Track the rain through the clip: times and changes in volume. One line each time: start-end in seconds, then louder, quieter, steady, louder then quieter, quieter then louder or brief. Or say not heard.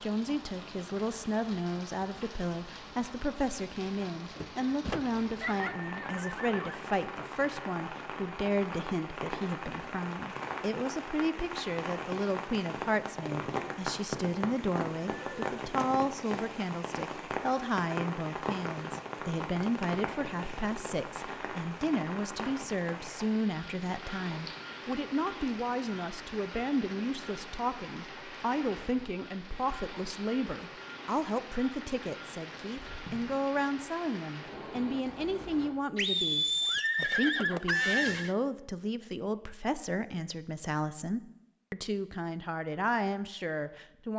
0.0-35.7 louder then quieter.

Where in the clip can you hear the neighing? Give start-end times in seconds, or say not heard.
5.4-6.8, 15.0-15.4, 36.0-38.4.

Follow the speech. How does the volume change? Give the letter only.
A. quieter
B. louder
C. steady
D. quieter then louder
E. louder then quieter
C.